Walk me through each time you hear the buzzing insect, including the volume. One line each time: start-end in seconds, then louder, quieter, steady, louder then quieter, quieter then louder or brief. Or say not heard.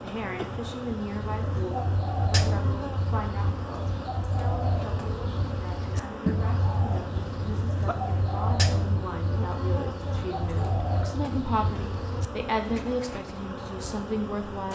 0.0-14.7 steady.